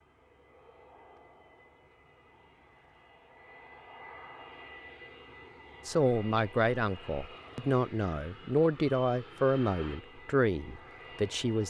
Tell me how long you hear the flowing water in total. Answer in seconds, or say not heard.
not heard.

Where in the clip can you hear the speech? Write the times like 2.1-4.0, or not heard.
5.8-11.6.